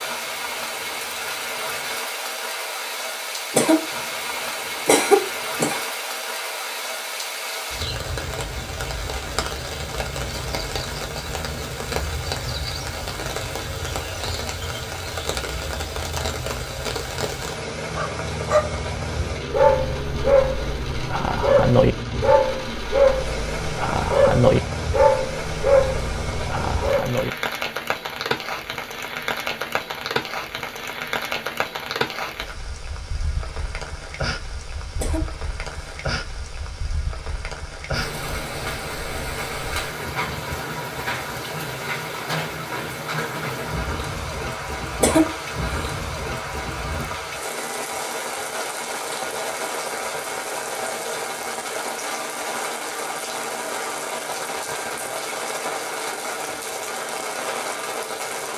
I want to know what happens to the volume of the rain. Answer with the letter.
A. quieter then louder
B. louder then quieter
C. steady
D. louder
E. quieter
C.